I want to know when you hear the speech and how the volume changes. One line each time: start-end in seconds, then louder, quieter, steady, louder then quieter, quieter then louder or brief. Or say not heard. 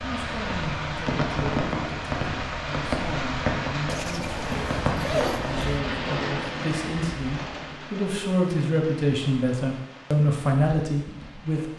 0.0-11.7 louder.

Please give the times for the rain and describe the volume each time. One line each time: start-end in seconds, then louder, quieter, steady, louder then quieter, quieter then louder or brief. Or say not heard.
0.0-11.7 quieter.